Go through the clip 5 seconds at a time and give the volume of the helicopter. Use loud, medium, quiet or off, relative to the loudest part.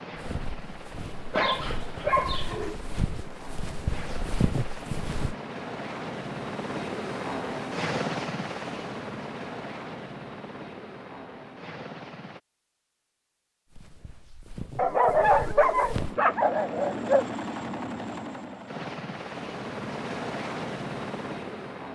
medium, loud, medium, loud, loud.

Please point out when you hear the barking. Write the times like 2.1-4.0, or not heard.
1.3-2.8, 14.8-17.3.